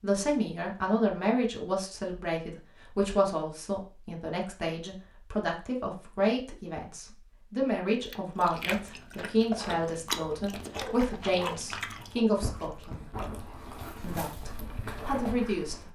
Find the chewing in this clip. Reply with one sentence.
The chewing can be heard from 7.9 to 13.3 s.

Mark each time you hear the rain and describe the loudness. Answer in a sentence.
The rain can't be heard in this clip.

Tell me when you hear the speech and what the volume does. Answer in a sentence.
The speech can be heard from 0.0 to 13.1 s, at a steady volume; and briefly from 14.0 to 15.9 s.